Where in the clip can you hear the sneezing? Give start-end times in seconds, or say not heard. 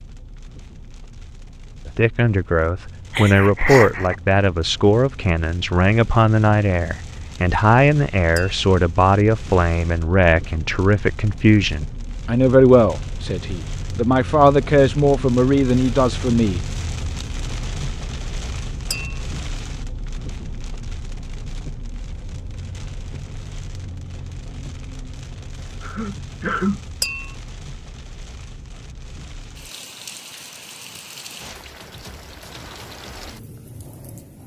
3.1-4.2, 25.8-26.9.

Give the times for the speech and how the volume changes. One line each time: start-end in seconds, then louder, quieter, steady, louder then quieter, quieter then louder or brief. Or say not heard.
1.9-16.6 steady.